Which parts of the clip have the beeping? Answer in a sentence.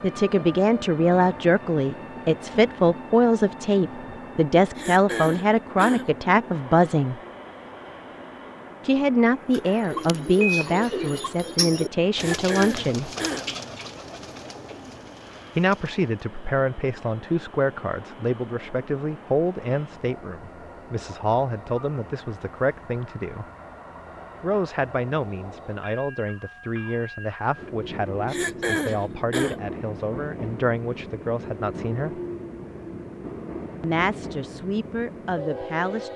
The beeping can be heard from 9.6 to 11.3 s.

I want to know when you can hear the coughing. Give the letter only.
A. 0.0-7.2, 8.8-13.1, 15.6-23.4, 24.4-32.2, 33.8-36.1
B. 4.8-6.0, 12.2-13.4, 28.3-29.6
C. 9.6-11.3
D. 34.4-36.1
B.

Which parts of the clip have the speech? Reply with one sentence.
You can hear the speech from 0.0 to 7.2 s, from 8.8 to 13.1 s, from 15.6 to 23.4 s, from 24.4 to 32.2 s and from 33.8 to 36.1 s.